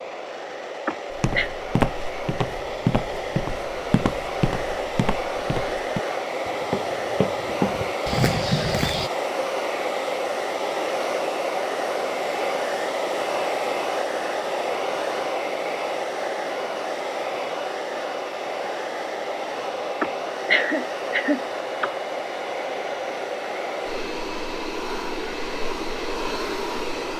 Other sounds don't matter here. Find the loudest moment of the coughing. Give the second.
21 s.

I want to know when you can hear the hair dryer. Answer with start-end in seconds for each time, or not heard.
0.0-27.1.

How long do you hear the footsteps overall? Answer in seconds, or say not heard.
8 s.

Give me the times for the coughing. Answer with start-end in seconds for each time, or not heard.
0.8-1.5, 20.0-21.9.